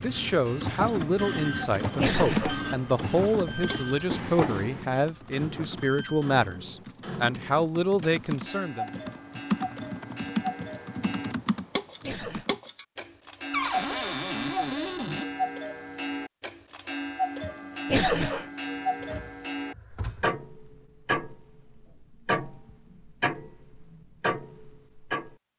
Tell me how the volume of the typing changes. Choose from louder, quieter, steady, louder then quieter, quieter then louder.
quieter then louder.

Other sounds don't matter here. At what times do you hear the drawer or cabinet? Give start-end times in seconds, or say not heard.
4.1-4.8, 13.5-15.2, 19.0-20.3.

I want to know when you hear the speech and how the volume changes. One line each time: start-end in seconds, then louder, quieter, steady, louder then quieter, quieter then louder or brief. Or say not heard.
0.0-8.9 steady.